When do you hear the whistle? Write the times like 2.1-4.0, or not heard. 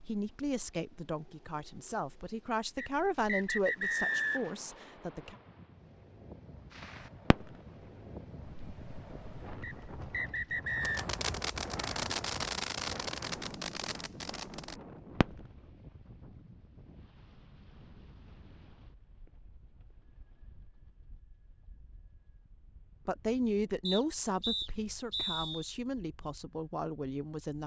2.8-4.5, 9.6-11.1, 23.9-25.6.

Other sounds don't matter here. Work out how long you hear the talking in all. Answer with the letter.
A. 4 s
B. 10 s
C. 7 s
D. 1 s
B.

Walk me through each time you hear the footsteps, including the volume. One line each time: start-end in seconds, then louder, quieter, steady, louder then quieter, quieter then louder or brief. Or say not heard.
not heard.